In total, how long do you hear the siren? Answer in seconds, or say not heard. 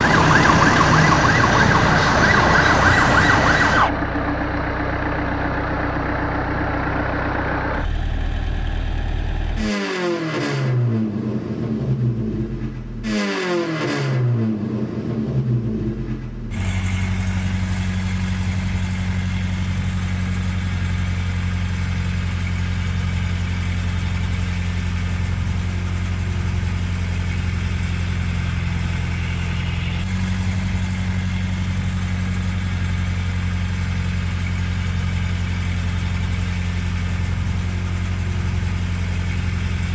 4 s.